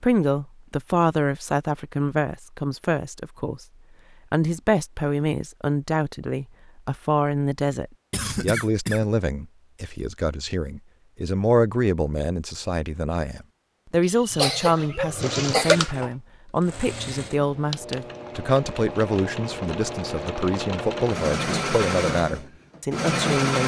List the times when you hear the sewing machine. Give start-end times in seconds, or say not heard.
14.3-23.6.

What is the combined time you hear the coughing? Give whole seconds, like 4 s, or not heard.
3 s.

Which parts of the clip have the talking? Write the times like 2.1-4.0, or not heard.
0.0-3.6, 4.3-23.6.